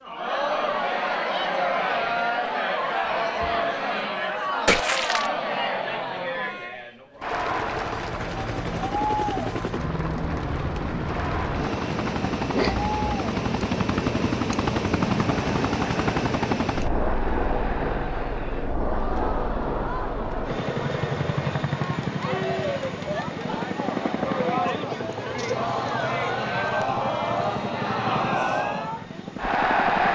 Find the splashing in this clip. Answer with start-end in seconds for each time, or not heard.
4.7-5.3.